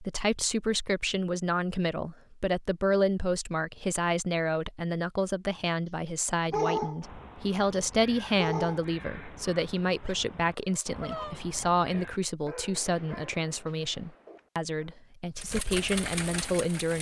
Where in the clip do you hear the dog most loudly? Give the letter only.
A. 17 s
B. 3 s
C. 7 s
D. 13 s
C.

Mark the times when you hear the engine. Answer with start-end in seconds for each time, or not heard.
15.3-16.9.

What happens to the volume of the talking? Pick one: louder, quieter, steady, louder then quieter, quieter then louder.
steady.